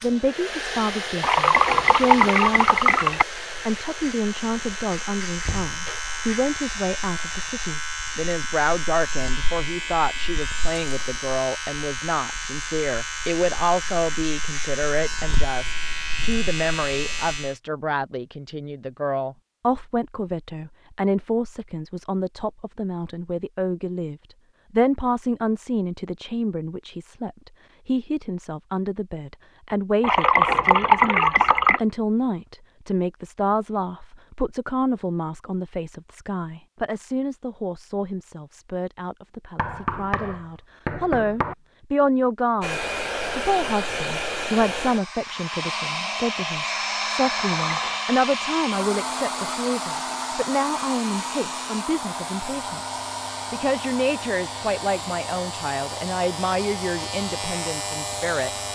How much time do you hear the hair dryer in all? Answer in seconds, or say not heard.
24 s.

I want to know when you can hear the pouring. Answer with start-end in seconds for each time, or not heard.
1.2-3.2, 30.0-31.8, 47.5-48.0.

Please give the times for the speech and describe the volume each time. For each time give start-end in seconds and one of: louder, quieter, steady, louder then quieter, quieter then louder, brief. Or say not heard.
0.0-58.5 steady.